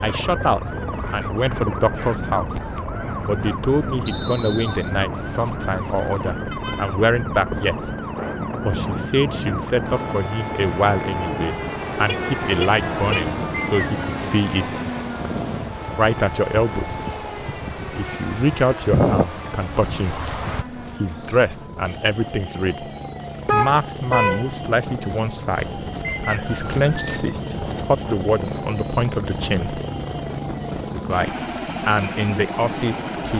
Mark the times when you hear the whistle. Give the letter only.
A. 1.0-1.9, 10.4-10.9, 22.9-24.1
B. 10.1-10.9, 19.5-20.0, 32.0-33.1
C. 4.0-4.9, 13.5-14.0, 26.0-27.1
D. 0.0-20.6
C.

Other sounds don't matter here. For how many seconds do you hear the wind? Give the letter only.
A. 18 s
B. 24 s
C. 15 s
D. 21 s
D.